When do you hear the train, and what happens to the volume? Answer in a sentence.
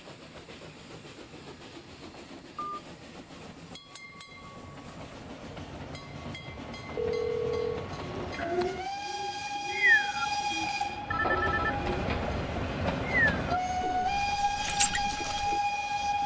You can hear the train from 0.0 to 16.2 s, getting louder.